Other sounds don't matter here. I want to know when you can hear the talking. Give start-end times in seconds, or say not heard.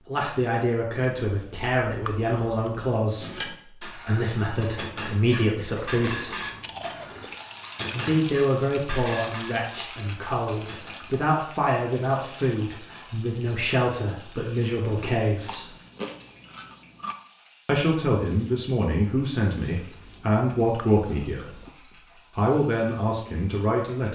0.1-6.4, 7.9-15.7, 17.6-21.5, 22.4-24.1.